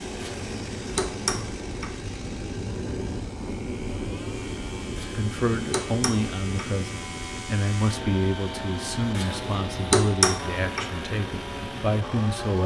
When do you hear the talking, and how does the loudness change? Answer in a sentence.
The talking can be heard from 5.2 to 12.6 s, at a steady volume.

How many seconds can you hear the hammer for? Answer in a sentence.
You can hear the hammer for 5 seconds altogether.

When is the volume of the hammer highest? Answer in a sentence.
The loudest moment of the hammer is at 10 seconds.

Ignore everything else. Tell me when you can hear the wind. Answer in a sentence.
The wind can be heard from 0.0 to 12.6 s.